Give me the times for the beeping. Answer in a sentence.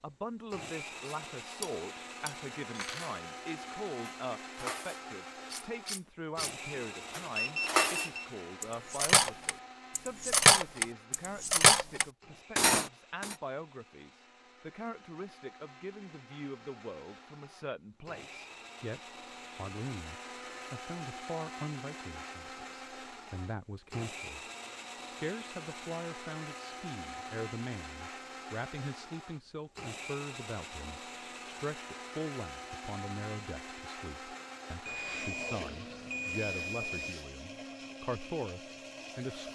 The beeping can be heard from 7.3 to 8.3 s and from 34.9 to 37.2 s.